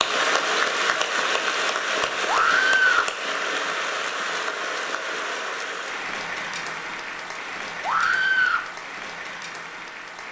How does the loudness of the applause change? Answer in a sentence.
The volume of the applause goes down.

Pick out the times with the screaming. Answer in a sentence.
You can hear the screaming from 2.2 to 3.1 s and from 7.8 to 8.7 s.